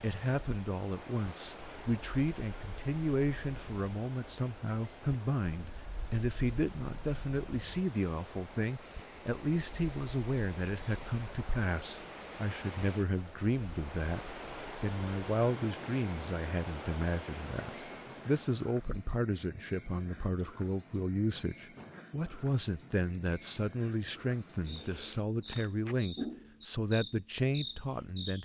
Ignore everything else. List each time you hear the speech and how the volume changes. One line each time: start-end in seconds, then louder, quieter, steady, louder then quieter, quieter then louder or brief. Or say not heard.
0.0-14.2 steady
14.8-28.4 steady.